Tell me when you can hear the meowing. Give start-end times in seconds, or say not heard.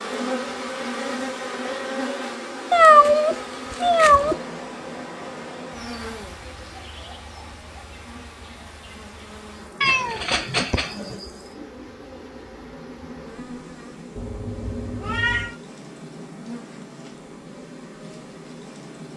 2.7-4.3, 9.8-11.2, 14.2-15.6.